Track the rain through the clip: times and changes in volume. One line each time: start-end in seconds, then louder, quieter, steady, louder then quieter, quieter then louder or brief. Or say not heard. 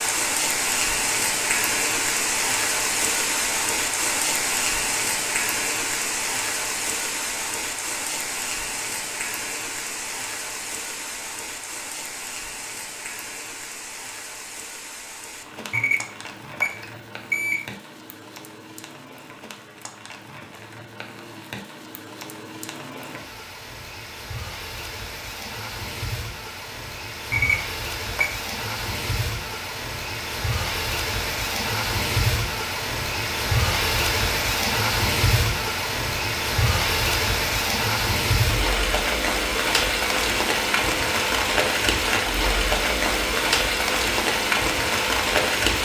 0.0-45.8 quieter then louder.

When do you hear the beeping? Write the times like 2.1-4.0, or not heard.
15.7-17.7, 27.3-28.4.